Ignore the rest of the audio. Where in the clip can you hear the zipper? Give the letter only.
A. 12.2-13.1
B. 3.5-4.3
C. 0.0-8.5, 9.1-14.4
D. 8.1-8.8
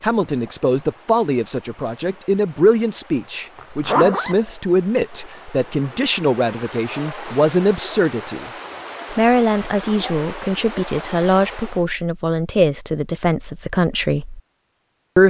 B.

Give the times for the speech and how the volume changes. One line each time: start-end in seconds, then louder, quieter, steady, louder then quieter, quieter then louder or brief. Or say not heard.
0.0-8.5 steady
9.1-14.4 steady.